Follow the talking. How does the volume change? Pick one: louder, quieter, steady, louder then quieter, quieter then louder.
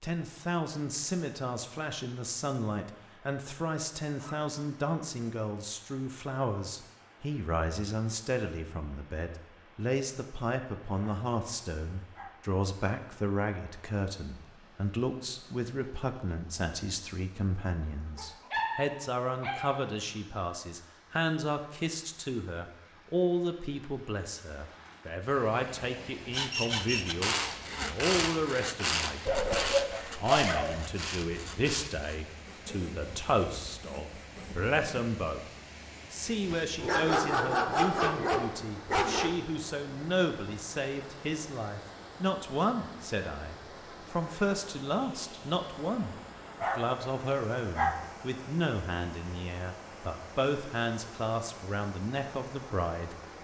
steady.